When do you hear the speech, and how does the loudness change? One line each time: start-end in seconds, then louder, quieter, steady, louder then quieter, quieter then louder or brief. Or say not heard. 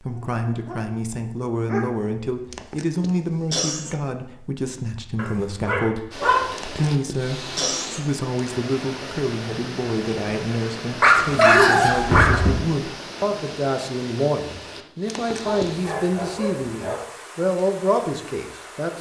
0.0-18.9 steady.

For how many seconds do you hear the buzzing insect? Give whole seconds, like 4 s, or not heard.
not heard.